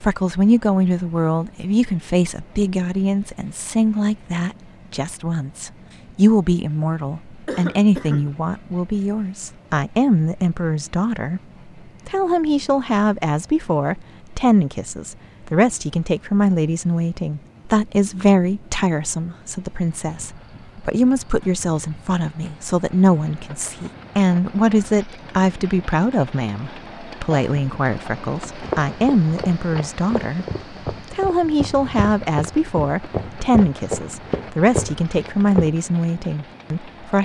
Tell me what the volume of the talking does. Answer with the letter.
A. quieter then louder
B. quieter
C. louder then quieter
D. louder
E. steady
E.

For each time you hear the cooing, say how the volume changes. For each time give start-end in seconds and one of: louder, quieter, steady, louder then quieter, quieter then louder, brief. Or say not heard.
not heard.